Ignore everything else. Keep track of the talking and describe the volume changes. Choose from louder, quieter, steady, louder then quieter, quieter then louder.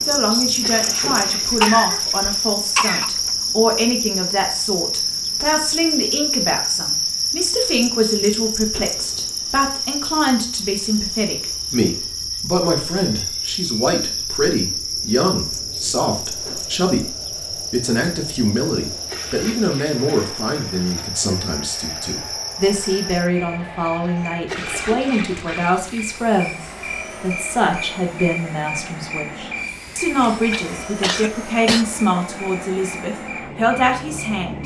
steady.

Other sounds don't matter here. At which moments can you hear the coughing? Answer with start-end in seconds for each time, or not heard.
1.6-3.1, 30.5-31.9.